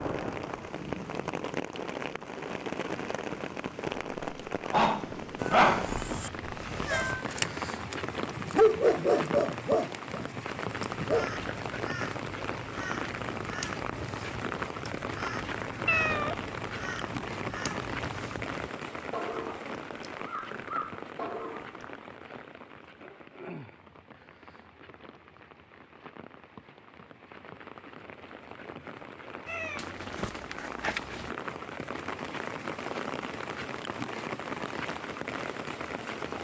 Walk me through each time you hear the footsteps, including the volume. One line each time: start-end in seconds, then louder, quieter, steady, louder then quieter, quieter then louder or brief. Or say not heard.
not heard.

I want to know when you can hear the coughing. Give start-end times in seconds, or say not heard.
not heard.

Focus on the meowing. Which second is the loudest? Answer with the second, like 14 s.
16 s.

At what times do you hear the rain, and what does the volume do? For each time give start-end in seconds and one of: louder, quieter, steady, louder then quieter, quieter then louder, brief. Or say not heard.
0.0-36.3 quieter then louder.